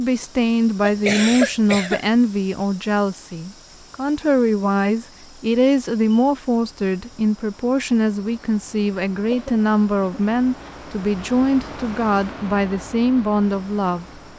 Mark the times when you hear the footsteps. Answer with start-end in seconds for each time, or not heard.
not heard.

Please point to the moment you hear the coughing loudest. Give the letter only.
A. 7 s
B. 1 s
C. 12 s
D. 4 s
B.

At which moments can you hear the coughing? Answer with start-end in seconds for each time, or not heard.
0.8-2.0, 9.3-10.2.